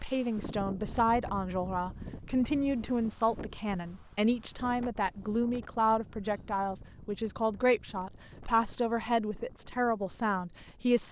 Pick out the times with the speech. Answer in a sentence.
The speech can be heard from 0.0 to 11.0 s.